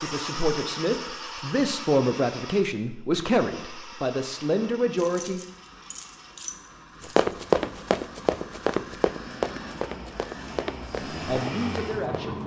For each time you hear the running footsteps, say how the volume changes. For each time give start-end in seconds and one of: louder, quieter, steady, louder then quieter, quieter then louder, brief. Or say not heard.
7.0-12.3 quieter.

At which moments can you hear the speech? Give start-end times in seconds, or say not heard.
0.0-5.5, 11.2-12.4.